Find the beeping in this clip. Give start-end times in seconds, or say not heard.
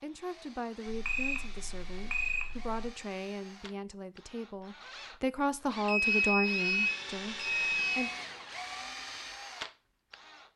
0.8-2.9, 5.8-8.2.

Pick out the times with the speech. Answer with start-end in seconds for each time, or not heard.
0.0-8.1.